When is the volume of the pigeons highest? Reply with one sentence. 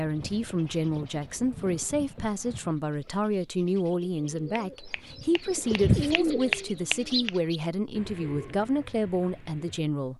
The loudest moment of the pigeons is at 6 seconds.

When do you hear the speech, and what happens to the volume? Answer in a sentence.
The speech can be heard from 0.0 to 10.1 s, at a steady volume.